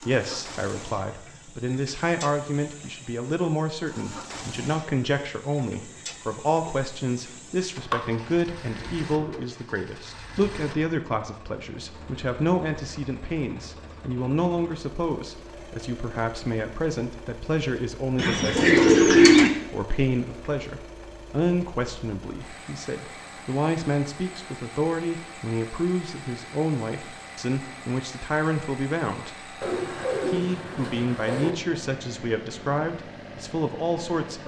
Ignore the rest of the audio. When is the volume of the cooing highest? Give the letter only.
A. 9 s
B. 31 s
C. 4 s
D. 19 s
D.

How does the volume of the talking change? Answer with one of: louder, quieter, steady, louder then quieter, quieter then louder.
steady.